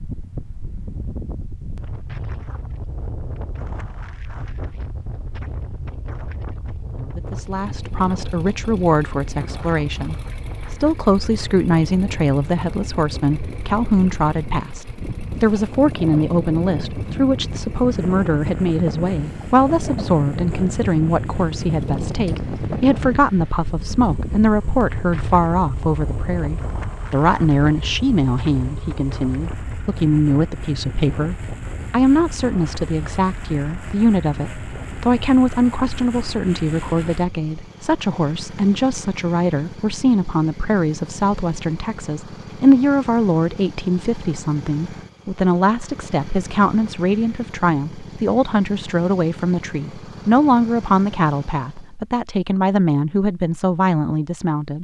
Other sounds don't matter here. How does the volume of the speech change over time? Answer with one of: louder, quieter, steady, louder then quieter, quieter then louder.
steady.